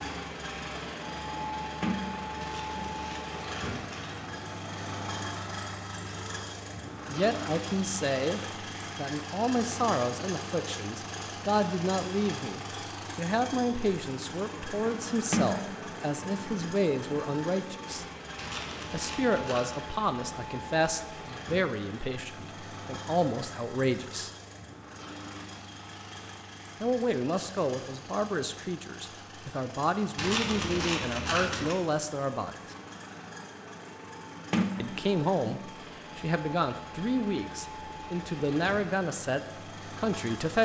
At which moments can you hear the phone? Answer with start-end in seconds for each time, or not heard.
not heard.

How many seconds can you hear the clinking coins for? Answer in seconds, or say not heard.
5 s.